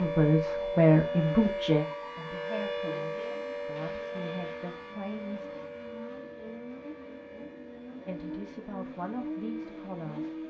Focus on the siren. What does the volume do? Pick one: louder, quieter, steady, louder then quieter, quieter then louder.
quieter.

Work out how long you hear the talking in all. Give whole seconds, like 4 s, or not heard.
8 s.